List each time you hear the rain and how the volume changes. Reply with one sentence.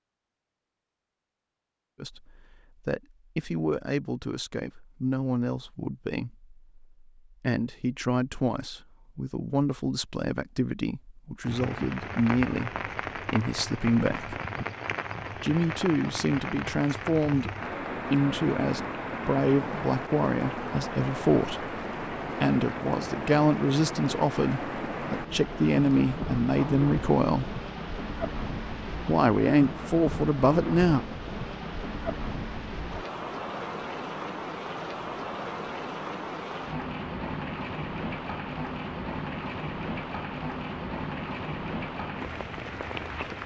The rain can be heard from 11.4 to 43.4 s, at a steady volume.